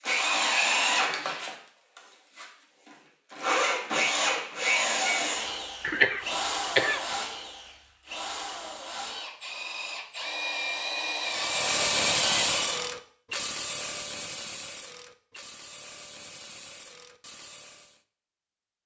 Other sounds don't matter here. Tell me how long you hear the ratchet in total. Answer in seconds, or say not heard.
7 s.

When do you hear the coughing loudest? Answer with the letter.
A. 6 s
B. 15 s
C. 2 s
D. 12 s
A.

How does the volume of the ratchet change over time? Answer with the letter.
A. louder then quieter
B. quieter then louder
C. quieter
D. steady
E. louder
C.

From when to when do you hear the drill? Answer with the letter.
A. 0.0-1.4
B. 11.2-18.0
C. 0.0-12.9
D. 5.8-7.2
C.